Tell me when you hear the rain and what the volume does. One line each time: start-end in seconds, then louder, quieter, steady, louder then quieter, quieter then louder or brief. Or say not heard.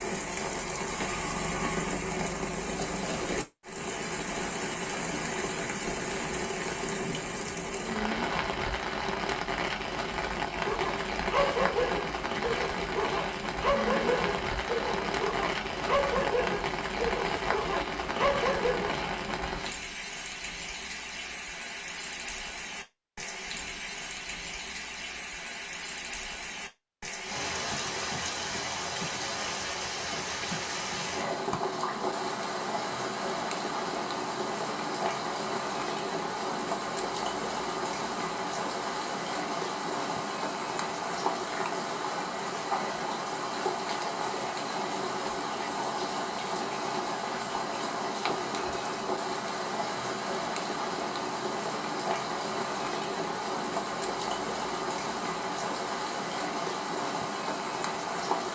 0.0-58.5 steady.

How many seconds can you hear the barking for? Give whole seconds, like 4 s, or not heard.
8 s.